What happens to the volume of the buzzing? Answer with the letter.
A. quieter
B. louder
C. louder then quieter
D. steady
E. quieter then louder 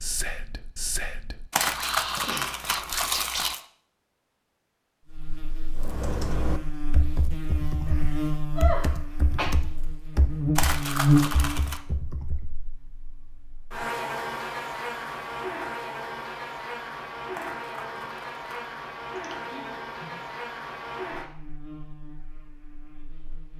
C.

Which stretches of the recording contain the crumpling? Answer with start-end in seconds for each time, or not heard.
1.5-3.6, 10.6-11.8, 17.3-18.8.